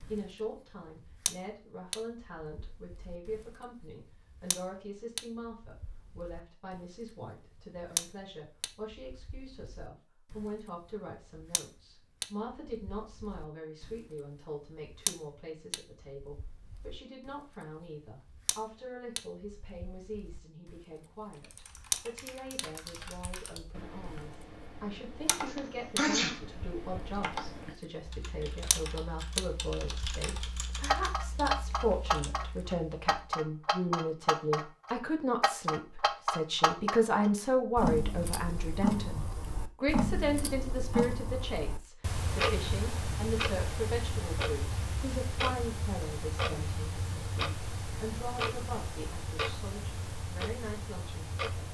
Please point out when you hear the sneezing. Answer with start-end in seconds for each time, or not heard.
25.4-26.4.